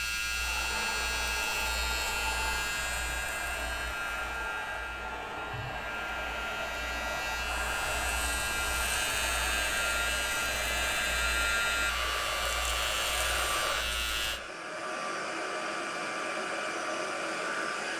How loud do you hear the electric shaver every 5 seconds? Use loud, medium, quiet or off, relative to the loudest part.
loud, loud, loud, off.